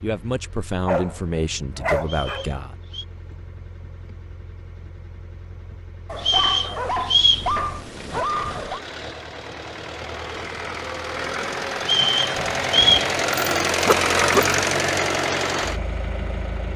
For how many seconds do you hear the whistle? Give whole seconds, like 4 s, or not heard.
4 s.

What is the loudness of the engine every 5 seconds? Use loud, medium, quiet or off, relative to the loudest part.
quiet, quiet, loud, loud.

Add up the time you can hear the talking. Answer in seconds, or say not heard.
3 s.